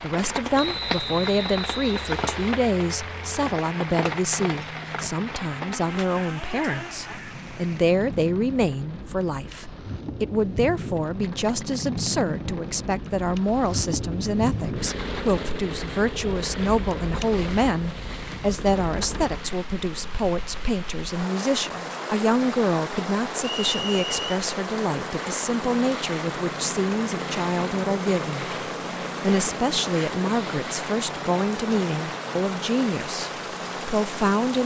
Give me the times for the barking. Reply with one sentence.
The barking can't be heard in this clip.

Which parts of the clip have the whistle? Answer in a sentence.
The whistle can be heard from 0.6 to 2.5 s and from 23.4 to 24.2 s.